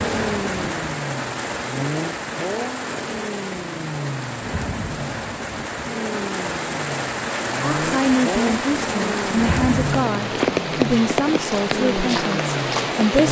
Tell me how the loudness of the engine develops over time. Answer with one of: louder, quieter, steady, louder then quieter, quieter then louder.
steady.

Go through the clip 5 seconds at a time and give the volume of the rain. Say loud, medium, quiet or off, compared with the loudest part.
medium, loud, loud.